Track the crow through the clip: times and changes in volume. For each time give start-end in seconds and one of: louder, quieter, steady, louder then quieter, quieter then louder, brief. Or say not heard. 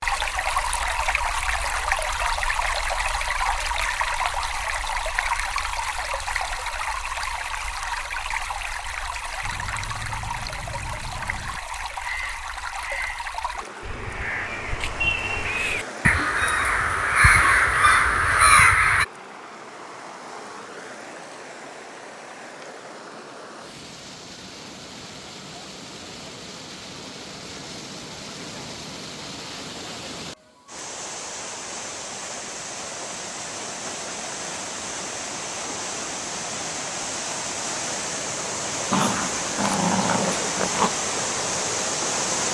9.4-19.1 louder.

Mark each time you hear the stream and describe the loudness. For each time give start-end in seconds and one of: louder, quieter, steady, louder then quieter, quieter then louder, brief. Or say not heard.
0.0-42.5 quieter then louder.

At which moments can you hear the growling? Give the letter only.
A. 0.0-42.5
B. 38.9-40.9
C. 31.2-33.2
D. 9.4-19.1
B.